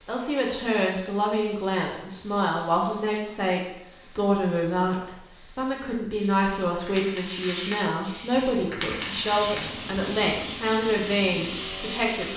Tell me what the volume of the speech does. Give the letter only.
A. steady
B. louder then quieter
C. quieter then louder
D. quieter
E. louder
A.